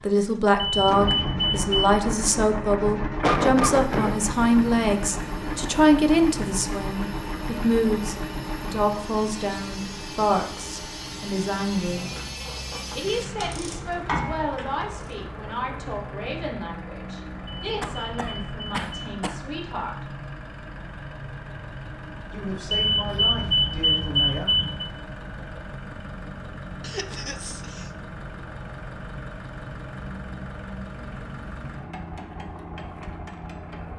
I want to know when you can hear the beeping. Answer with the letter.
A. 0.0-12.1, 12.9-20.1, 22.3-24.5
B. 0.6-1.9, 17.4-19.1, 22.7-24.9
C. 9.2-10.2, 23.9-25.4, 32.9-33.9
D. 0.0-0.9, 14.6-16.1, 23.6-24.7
B.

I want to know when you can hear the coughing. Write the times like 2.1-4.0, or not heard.
3.2-4.2, 17.8-19.4, 26.8-27.9.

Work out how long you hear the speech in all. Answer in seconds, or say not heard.
21 s.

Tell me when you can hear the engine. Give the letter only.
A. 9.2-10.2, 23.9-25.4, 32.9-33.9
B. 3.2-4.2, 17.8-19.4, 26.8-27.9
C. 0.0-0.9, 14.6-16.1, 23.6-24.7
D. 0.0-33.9
D.